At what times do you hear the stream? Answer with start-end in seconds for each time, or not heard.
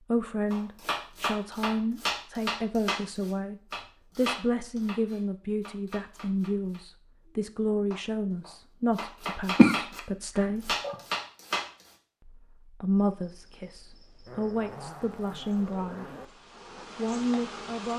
not heard.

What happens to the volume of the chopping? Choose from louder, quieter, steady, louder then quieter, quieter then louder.
quieter then louder.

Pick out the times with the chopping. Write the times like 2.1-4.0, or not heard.
0.5-11.9.